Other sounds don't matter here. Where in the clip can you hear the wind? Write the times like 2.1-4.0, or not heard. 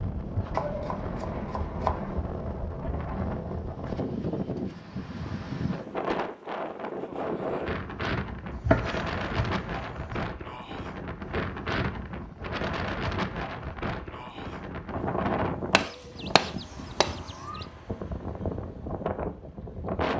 0.0-20.1.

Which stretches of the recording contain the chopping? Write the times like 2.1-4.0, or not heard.
0.5-2.1, 8.5-10.2, 15.7-17.6.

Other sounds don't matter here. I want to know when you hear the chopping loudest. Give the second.
9 s.